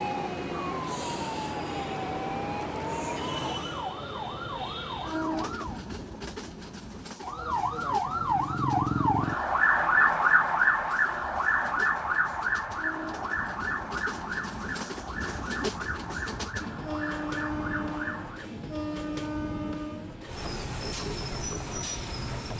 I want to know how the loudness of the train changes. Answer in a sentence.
The volume of the train goes down, then up.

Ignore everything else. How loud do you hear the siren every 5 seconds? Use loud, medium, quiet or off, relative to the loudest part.
medium, loud, loud, medium, off.